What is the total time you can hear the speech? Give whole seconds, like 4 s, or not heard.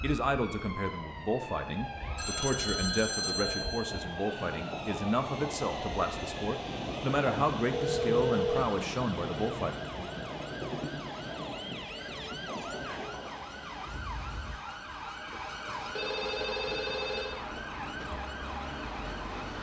10 s.